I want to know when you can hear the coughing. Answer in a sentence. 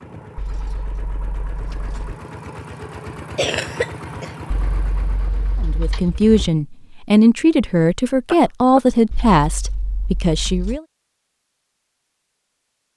The coughing can be heard from 3.4 to 4.3 s and from 8.2 to 8.8 s.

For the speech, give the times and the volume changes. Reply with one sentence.
You can hear the speech from 5.6 to 10.8 s, getting quieter.